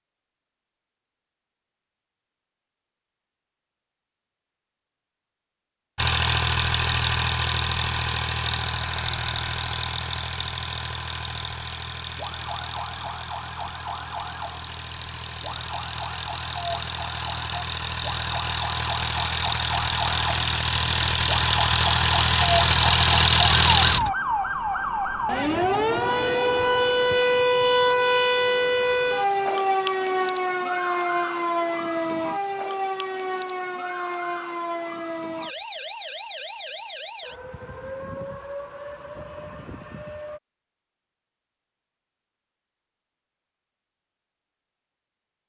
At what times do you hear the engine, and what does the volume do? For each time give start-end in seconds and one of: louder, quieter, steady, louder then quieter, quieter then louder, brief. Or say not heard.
6.0-24.1 quieter then louder.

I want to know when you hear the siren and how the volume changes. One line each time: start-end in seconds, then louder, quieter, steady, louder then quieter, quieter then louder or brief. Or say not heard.
12.1-40.4 louder then quieter.